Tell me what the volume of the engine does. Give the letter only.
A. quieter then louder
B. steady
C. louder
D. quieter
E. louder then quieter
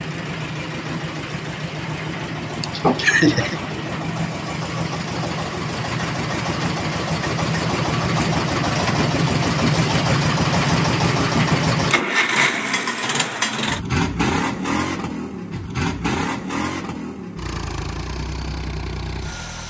E.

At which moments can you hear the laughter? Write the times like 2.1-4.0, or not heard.
2.6-3.6.